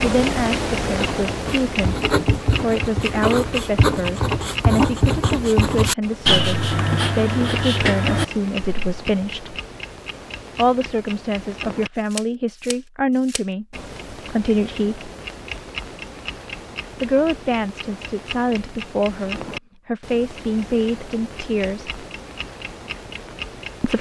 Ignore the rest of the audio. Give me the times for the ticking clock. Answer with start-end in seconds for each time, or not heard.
0.0-23.9.